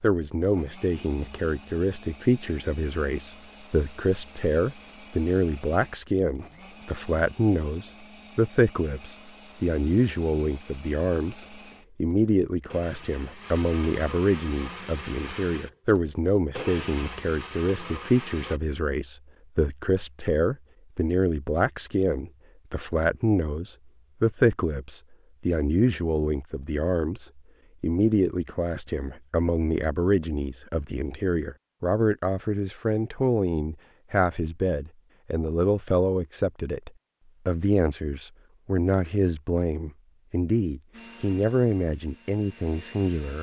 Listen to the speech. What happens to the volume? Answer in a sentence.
The loudness of the speech stays about the same.